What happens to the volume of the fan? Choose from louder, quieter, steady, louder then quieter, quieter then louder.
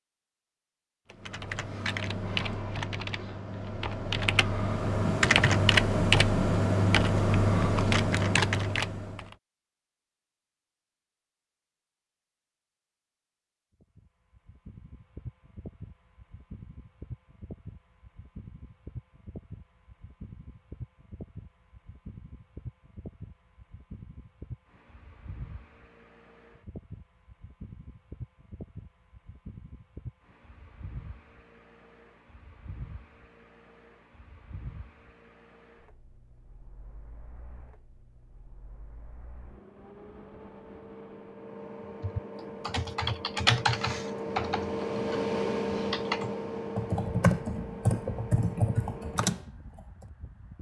louder.